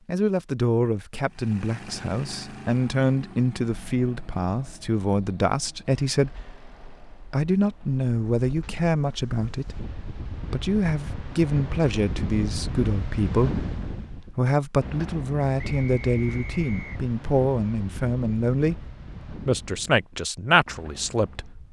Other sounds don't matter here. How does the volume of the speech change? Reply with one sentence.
The loudness of the speech stays about the same.